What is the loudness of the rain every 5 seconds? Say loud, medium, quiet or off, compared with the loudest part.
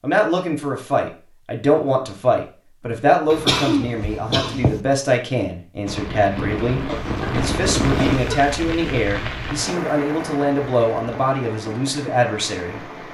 off, loud, medium.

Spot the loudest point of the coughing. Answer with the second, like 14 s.
4 s.